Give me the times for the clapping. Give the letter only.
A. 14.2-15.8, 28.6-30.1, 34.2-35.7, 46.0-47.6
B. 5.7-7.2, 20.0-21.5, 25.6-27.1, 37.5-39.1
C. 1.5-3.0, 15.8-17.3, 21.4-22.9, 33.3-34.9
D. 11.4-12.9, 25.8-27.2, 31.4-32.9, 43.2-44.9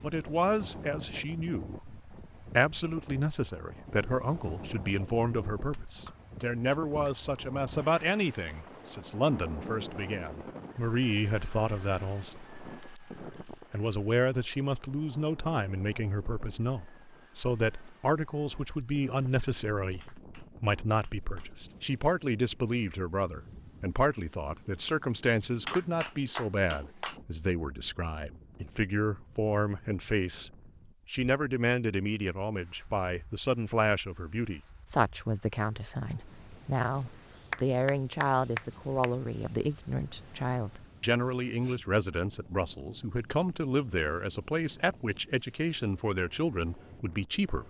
B.